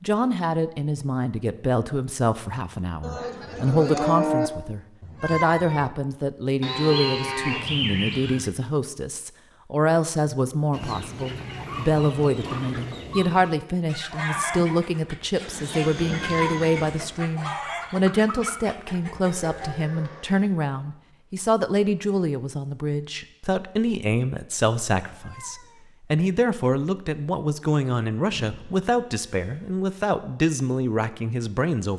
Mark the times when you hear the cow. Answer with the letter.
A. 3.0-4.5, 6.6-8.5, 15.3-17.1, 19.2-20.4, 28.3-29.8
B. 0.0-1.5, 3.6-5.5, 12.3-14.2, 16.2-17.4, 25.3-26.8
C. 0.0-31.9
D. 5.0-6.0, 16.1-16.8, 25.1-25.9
A.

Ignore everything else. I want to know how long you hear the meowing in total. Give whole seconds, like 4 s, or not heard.
2 s.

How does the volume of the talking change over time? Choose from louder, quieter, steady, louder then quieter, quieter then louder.
steady.